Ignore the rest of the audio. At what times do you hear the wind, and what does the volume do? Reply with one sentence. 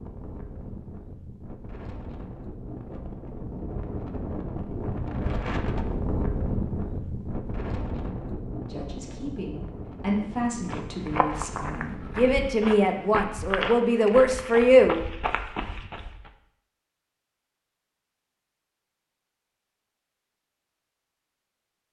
You can hear the wind from 0.0 to 12.5 s, getting louder then quieter.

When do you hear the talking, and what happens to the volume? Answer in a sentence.
The talking can be heard from 8.7 to 15.1 s, getting louder.